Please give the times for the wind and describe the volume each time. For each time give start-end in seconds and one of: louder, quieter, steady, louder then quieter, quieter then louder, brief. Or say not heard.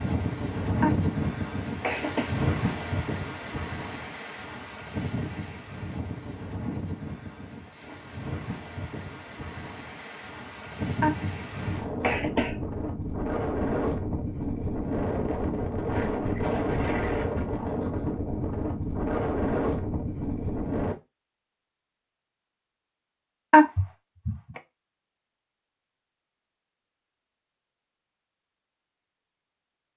0.0-20.9 quieter then louder.